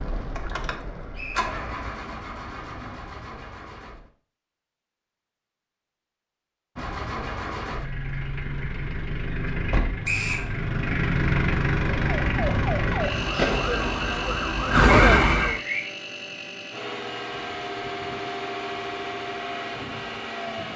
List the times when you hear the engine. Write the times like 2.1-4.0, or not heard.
0.0-4.1, 6.8-20.7.